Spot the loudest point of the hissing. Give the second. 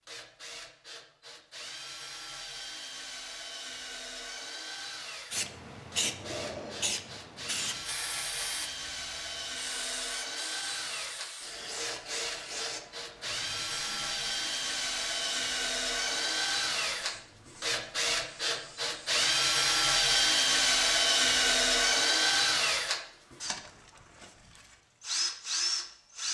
6 s.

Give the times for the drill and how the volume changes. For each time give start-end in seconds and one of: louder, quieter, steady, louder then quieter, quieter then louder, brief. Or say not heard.
0.1-26.2 louder.